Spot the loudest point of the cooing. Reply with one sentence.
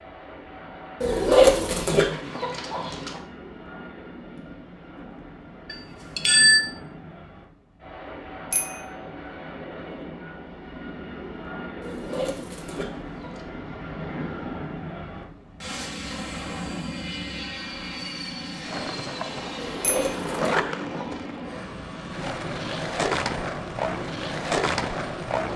The loudest moment of the cooing is at 1 second.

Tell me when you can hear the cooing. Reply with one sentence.
You can hear the cooing from 1.0 to 3.2 s, from 11.8 to 13.4 s and from 19.6 to 21.2 s.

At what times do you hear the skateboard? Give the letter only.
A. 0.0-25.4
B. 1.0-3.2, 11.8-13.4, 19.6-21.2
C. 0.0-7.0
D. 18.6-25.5
D.